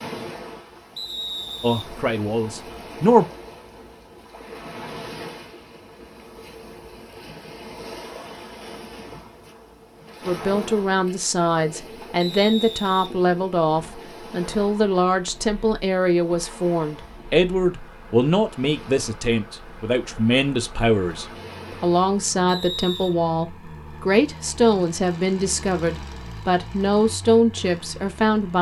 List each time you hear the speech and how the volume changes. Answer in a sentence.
You can hear the speech briefly from 1.6 to 3.3 s; and from 10.2 to 28.5 s, at a steady volume.